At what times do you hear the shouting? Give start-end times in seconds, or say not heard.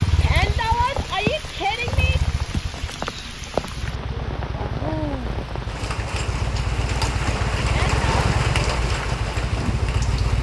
0.2-2.2, 7.6-8.0.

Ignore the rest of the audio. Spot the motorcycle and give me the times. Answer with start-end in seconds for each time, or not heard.
0.0-10.3.